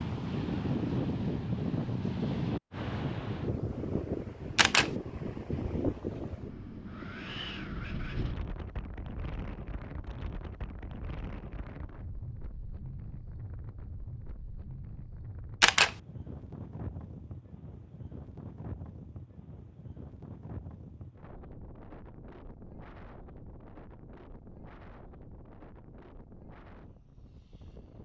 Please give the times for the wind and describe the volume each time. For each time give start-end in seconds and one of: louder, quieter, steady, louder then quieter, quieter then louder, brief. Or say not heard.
0.0-28.0 quieter.